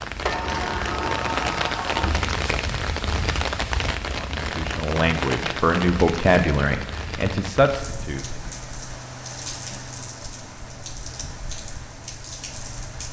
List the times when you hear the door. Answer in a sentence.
You can hear the door from 0.2 to 2.2 s.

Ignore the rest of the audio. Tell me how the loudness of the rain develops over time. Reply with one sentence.
The volume of the rain goes down.